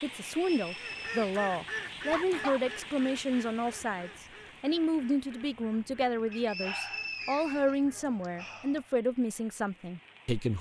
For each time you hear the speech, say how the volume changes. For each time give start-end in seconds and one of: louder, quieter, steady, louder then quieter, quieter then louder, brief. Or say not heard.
0.0-10.5 steady.